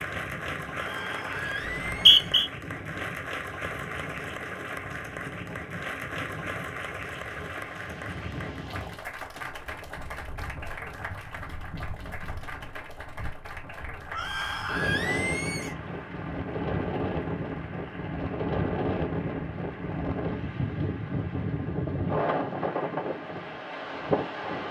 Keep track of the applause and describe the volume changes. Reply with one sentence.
The volume of the applause goes down.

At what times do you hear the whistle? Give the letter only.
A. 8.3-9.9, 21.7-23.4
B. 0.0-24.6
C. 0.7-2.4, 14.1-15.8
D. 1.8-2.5
D.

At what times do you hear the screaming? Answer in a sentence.
You can hear the screaming from 0.7 to 2.4 s and from 14.1 to 15.8 s.